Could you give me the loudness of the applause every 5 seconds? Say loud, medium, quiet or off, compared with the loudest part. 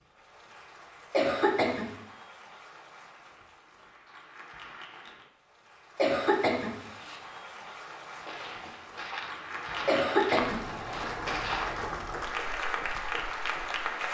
quiet, medium, loud.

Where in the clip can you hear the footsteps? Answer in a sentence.
The footsteps can be heard from 8.1 to 13.8 s.